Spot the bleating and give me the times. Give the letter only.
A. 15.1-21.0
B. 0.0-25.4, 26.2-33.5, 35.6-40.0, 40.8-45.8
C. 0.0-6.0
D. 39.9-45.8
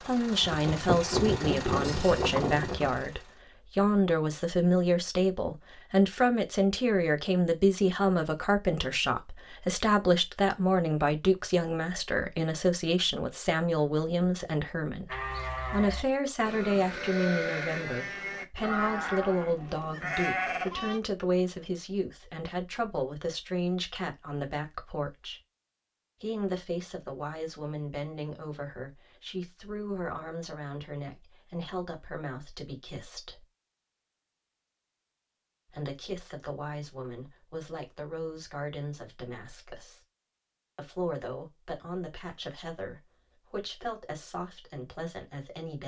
A.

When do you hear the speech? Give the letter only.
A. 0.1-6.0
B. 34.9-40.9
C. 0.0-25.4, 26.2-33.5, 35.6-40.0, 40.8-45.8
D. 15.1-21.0
C.